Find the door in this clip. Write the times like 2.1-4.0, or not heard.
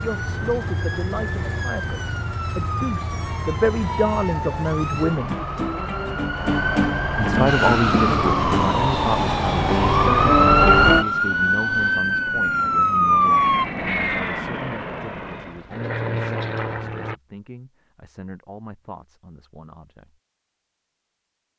not heard.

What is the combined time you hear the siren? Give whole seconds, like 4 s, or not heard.
14 s.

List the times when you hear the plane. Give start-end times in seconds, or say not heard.
7.5-17.1.